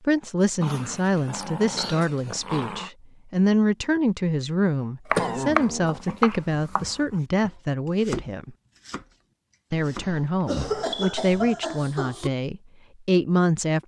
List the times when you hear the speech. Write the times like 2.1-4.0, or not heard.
0.1-8.6, 9.7-13.8.